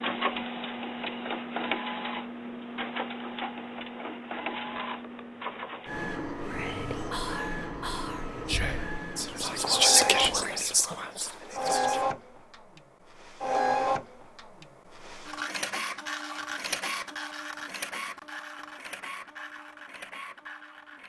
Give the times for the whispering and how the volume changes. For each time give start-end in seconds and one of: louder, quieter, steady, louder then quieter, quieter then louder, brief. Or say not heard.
6.5-12.1 louder then quieter.